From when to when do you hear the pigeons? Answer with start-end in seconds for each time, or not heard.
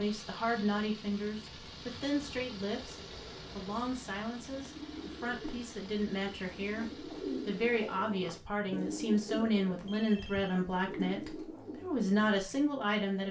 4.5-12.4.